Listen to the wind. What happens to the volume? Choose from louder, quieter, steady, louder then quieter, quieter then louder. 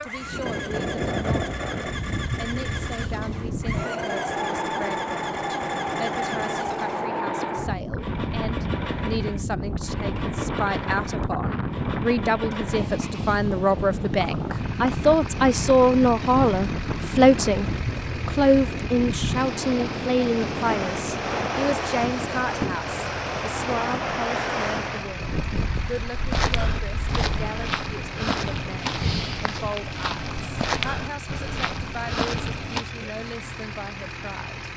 steady.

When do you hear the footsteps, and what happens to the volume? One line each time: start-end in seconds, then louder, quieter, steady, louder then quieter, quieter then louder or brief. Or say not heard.
26.3-32.9 steady.